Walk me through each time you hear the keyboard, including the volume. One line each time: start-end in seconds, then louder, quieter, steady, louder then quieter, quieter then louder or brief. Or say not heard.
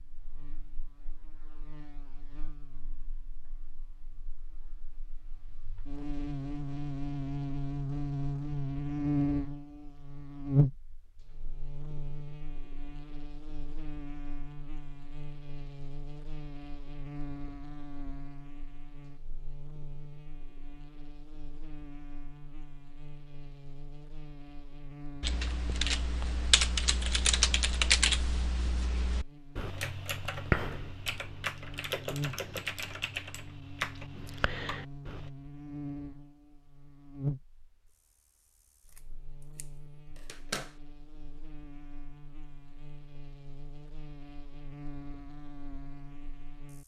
25.2-35.3 quieter.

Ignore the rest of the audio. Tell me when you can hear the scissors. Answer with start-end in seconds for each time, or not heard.
38.9-40.8.